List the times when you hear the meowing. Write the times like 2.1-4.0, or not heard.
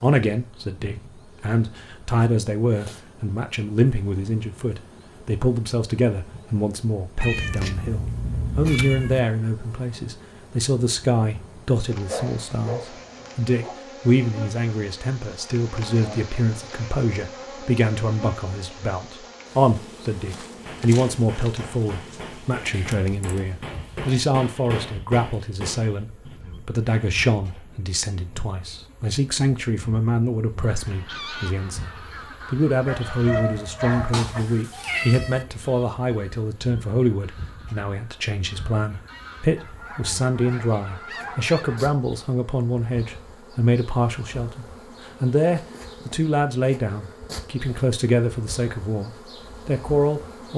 7.2-9.2, 22.7-24.1, 34.1-35.5.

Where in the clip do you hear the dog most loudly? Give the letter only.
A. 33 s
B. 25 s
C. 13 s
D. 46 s
A.